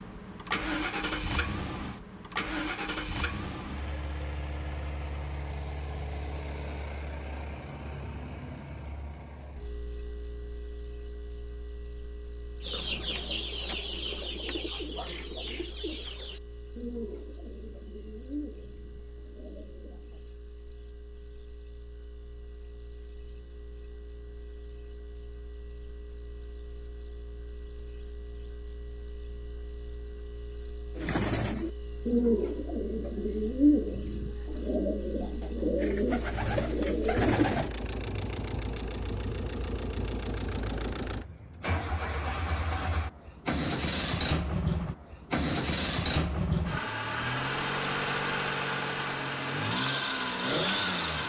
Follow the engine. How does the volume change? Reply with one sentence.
The loudness of the engine goes down, then up.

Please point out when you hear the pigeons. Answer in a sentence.
The pigeons can be heard from 12.6 to 20.2 s and from 30.9 to 37.7 s.